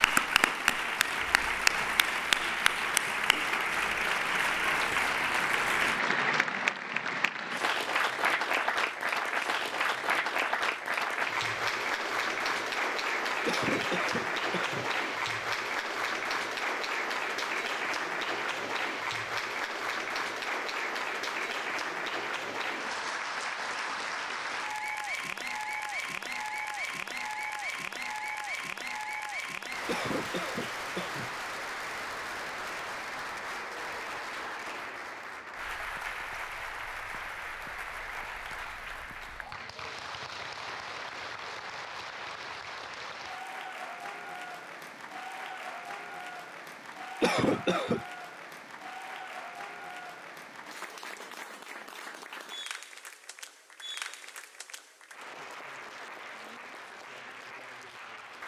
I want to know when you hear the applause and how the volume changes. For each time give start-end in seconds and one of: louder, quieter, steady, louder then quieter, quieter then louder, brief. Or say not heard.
0.0-58.4 quieter.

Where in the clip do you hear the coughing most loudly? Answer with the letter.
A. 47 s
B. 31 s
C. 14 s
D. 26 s
A.